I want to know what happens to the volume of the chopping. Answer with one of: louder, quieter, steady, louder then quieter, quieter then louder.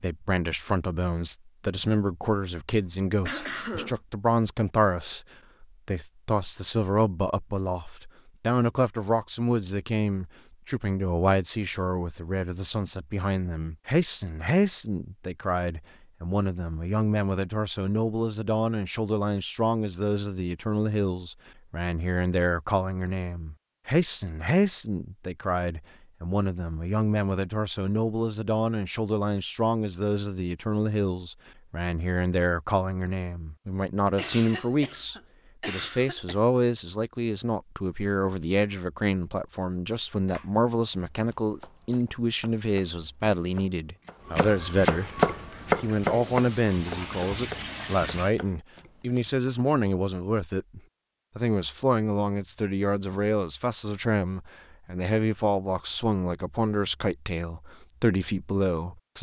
louder then quieter.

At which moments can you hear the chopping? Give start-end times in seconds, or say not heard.
39.9-49.4.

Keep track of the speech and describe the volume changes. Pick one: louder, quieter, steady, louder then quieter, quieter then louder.
steady.